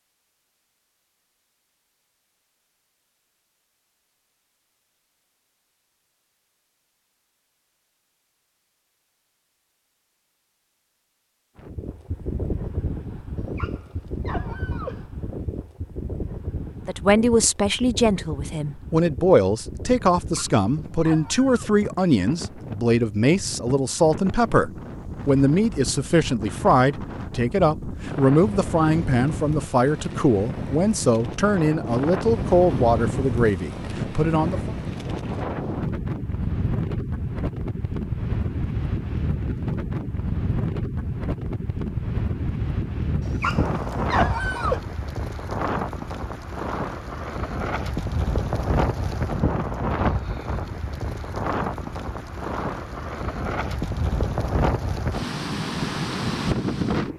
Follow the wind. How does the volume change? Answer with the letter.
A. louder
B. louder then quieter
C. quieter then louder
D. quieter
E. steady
A.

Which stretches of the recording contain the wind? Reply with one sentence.
You can hear the wind from 11.6 to 57.1 s.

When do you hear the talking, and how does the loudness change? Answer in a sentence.
You can hear the talking from 16.9 to 34.7 s, at a steady volume.